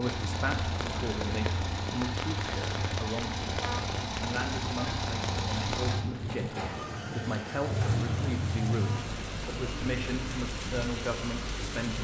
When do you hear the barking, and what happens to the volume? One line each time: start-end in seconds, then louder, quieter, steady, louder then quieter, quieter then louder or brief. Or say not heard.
not heard.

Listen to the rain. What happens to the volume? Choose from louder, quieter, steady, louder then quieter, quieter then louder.
steady.